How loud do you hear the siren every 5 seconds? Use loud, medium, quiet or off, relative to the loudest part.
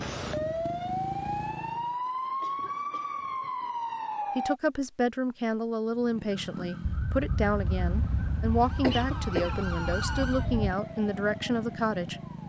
loud, medium, medium.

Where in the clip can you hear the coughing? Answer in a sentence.
The coughing can be heard from 2.4 to 3.3 s and from 8.8 to 9.6 s.